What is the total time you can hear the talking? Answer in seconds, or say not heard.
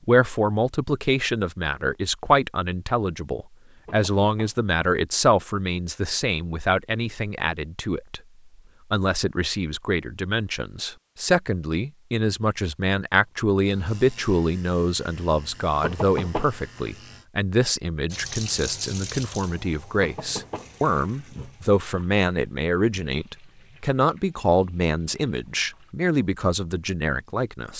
27 s.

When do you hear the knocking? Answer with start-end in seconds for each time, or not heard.
3.9-4.7, 15.8-16.8, 20.0-20.8.